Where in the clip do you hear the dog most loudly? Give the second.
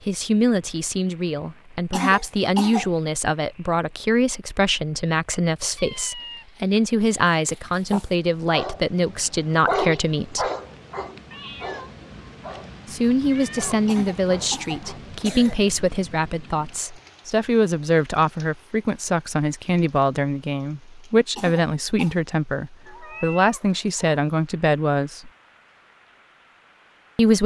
10 s.